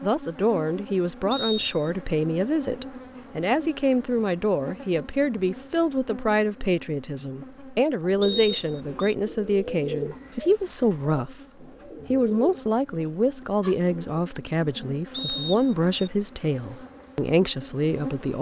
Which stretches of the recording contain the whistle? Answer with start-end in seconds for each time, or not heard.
1.3-2.0, 8.2-9.2, 15.1-15.9.